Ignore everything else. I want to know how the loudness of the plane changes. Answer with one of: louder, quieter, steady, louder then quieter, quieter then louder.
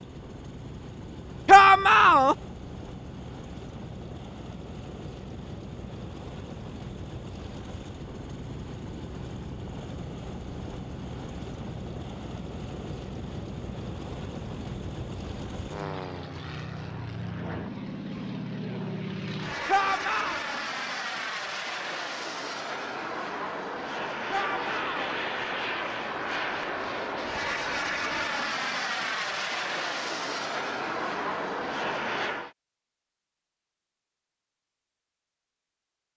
louder.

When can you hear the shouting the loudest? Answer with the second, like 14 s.
2 s.